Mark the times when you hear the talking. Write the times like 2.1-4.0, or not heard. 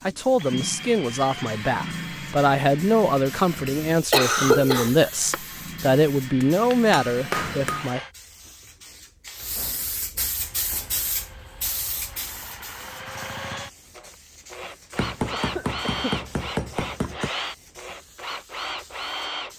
0.0-8.0.